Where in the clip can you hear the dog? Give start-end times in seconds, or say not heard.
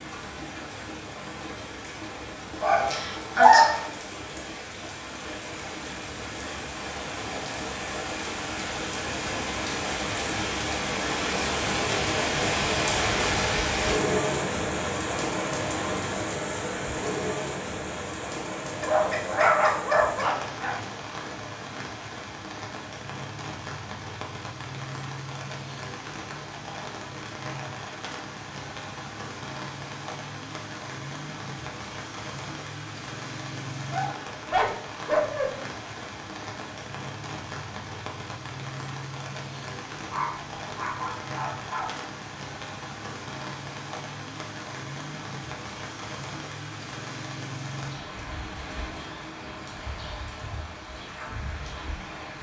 2.6-3.8, 18.8-20.8, 33.9-35.5, 40.1-41.9.